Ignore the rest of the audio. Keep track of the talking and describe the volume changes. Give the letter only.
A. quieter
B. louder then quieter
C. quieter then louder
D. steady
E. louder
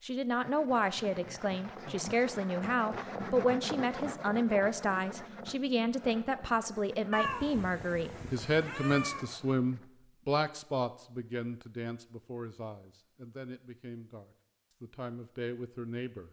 A.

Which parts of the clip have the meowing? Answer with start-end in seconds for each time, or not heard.
7.1-9.2.